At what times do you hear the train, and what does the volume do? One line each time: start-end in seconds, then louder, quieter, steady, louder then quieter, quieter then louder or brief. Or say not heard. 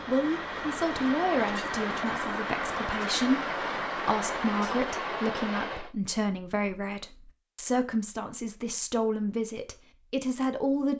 0.0-5.9 steady.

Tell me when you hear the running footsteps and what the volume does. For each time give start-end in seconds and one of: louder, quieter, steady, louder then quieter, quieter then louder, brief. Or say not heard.
not heard.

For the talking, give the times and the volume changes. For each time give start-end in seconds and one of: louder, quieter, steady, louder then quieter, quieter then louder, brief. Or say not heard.
0.1-10.9 steady.